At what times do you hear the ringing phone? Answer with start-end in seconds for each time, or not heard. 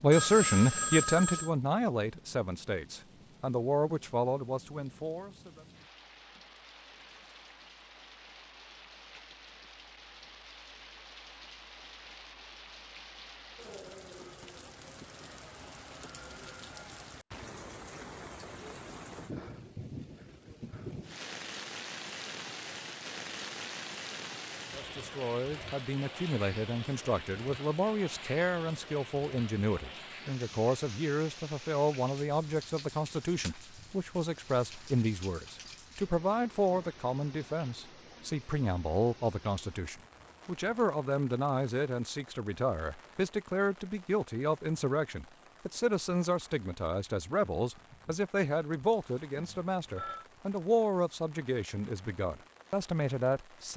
0.1-1.5, 49.4-50.2.